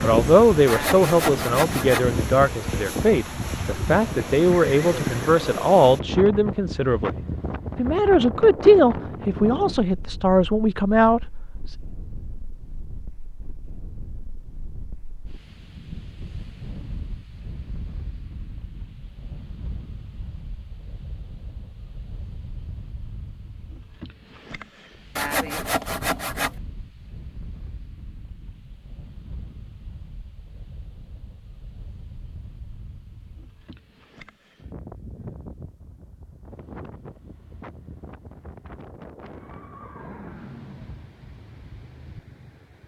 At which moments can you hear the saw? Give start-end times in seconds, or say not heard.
0.7-2.1, 25.1-26.6.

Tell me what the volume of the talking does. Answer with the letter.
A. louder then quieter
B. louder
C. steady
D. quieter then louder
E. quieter
C.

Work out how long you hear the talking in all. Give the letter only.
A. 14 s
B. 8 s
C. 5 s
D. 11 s
D.